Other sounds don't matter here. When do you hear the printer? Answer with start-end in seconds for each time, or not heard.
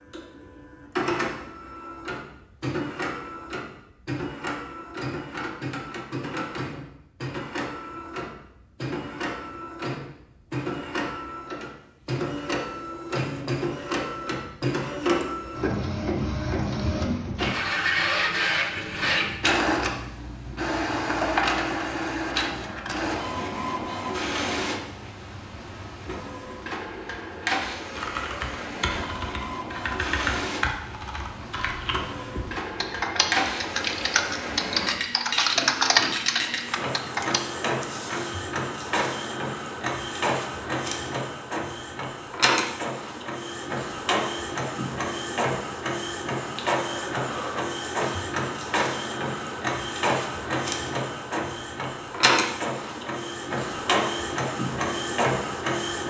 0.0-56.0.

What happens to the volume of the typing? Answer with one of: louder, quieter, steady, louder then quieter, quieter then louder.
louder.